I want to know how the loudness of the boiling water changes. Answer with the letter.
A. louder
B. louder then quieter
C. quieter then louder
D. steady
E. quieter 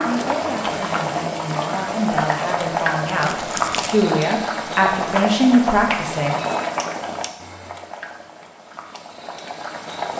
E.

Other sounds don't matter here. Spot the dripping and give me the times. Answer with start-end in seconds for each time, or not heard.
not heard.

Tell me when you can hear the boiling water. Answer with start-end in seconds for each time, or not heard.
0.0-10.1.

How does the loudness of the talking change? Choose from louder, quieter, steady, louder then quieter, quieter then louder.
louder.